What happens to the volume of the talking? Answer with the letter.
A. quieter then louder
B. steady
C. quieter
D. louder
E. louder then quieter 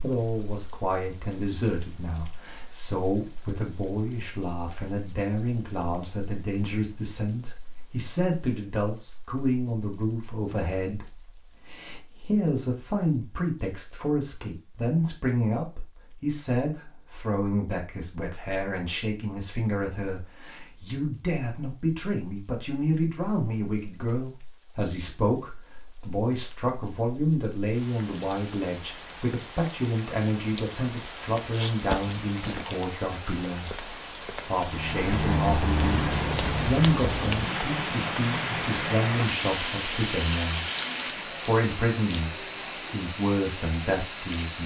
B.